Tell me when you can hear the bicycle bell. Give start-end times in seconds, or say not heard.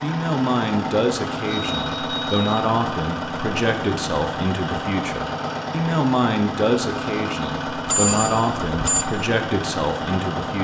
1.5-2.6, 7.8-9.1.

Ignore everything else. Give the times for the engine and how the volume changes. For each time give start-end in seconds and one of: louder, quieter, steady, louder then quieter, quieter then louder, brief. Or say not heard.
0.0-10.5 steady.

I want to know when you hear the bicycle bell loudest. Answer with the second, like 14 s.
8 s.